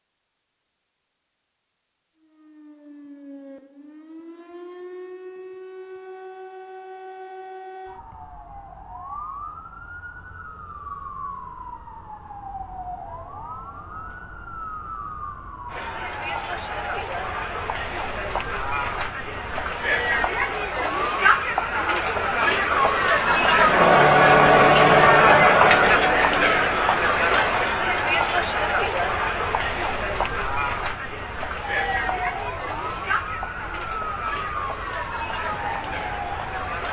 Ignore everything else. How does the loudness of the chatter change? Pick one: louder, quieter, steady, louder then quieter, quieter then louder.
louder then quieter.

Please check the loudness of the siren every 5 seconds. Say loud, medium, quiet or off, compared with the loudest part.
medium, medium, medium, medium, loud, loud, loud, loud.